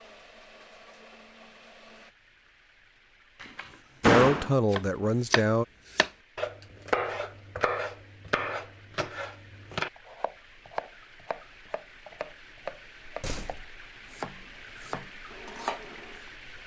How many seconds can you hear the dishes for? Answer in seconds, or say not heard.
not heard.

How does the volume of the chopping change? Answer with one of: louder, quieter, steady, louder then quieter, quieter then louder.
quieter.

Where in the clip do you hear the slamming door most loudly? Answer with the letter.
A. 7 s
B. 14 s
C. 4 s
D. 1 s
C.